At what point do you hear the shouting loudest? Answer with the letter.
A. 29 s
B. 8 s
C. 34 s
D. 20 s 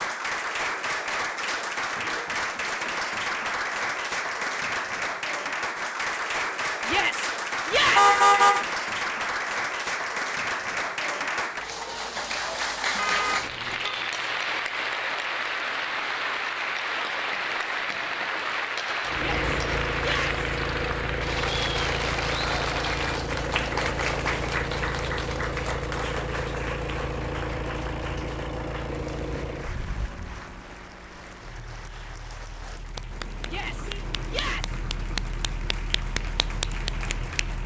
B.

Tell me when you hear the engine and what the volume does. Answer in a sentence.
You can hear the engine from 19.1 to 37.6 s, getting quieter then louder.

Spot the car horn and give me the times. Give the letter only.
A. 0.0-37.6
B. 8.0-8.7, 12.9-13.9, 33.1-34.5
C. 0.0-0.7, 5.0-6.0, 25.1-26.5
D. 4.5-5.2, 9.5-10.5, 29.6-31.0
B.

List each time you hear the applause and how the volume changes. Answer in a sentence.
You can hear the applause from 0.0 to 37.6 s, getting quieter.